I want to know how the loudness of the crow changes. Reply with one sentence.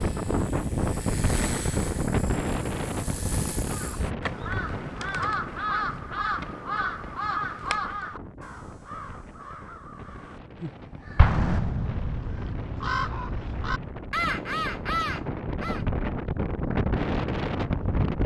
The loudness of the crow goes down, then up.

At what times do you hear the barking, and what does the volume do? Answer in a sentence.
The barking can't be heard in this clip.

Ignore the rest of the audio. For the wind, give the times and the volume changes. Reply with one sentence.
You can hear the wind from 0.0 to 18.2 s, getting quieter then louder.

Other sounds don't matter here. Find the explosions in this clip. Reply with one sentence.
You can hear the explosions from 11.2 to 12.2 s.